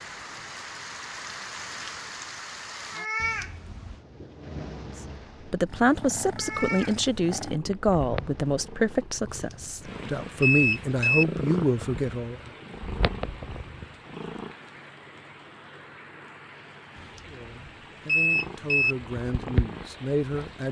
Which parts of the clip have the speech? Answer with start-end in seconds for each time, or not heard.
5.5-12.4, 17.2-20.6.